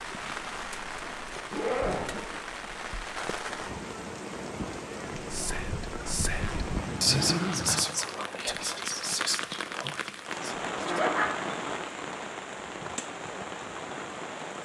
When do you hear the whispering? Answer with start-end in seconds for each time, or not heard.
5.2-11.1.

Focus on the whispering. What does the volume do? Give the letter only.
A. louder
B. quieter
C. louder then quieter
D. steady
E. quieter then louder
C.